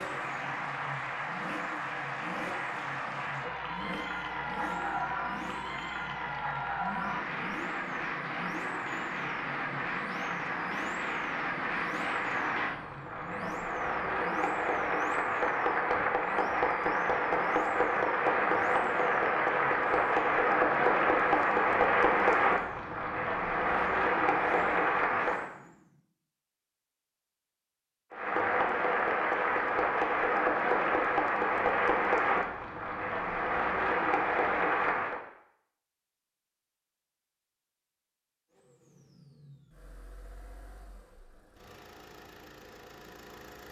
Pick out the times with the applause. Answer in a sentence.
You can hear the applause from 0.0 to 25.5 s and from 28.1 to 35.2 s.